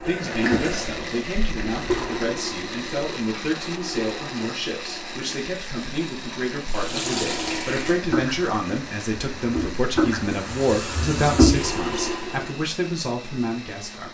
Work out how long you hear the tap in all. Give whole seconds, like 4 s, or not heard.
11 s.